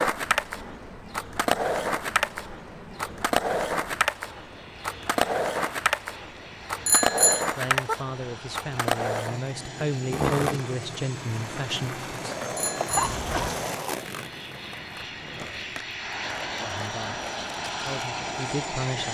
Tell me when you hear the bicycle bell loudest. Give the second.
7 s.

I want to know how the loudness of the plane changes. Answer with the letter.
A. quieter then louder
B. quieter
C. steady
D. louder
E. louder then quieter
D.